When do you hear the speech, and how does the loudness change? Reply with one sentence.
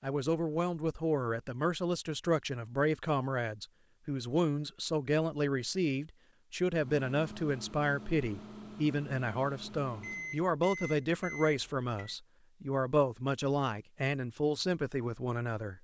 The speech can be heard from 0.0 to 15.8 s, at a steady volume.